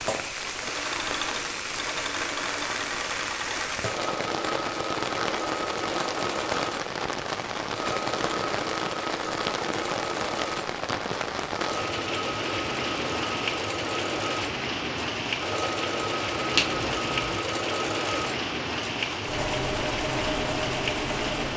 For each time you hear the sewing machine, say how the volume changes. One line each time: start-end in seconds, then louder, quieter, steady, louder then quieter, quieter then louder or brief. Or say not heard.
0.0-21.5 steady.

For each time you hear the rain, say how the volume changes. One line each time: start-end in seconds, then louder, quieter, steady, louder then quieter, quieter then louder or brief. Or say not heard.
0.0-21.5 steady.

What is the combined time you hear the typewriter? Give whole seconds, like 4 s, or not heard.
not heard.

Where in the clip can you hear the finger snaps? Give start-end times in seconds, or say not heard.
16.6-17.4.